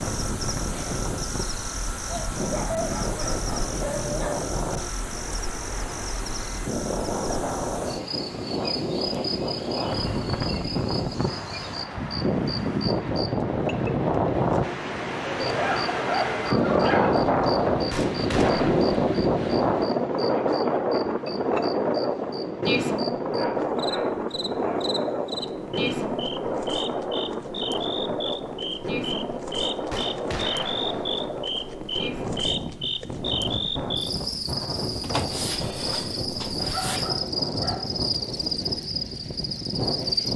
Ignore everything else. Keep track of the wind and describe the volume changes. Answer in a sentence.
The loudness of the wind goes up, then down.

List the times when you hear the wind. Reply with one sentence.
The wind can be heard from 0.0 to 40.3 s.